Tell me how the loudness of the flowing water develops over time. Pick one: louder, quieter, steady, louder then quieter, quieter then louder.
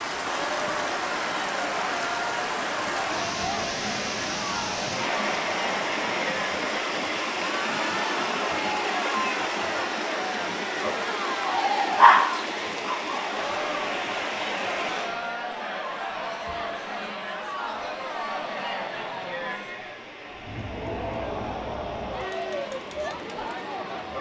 quieter.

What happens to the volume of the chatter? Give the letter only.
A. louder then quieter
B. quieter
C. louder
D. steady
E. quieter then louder
D.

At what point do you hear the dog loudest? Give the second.
12 s.